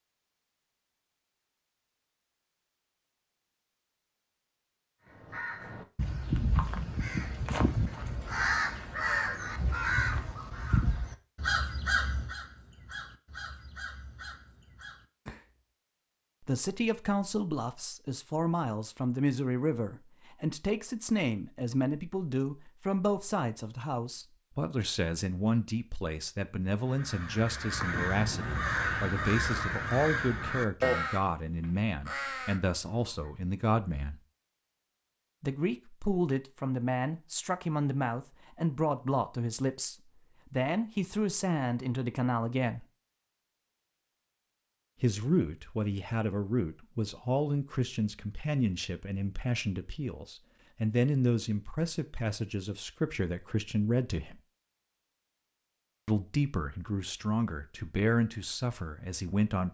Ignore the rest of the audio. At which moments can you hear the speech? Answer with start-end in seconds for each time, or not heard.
16.4-34.2, 35.4-42.9, 45.0-54.4, 56.0-59.7.